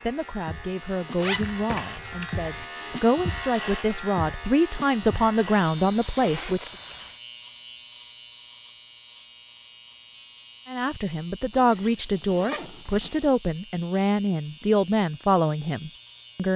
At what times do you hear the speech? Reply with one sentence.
You can hear the speech from 0.0 to 6.7 s and from 10.7 to 16.5 s.